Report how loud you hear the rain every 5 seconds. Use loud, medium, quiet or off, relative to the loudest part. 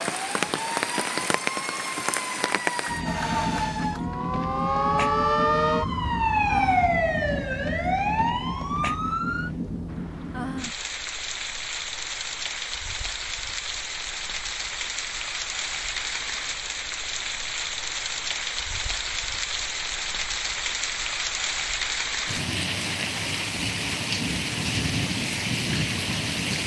loud, medium, medium, loud, loud, loud.